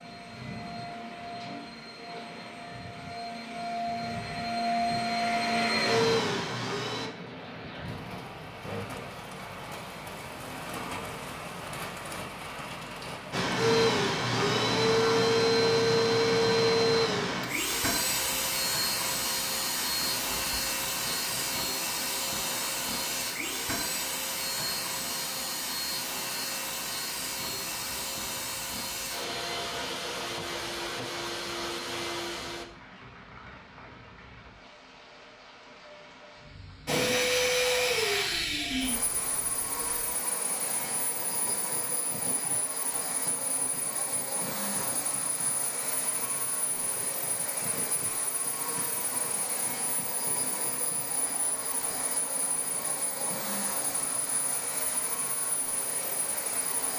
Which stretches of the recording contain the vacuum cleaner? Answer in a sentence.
The vacuum cleaner can be heard from 0.0 to 7.1 s, from 13.3 to 32.6 s and from 36.9 to 56.9 s.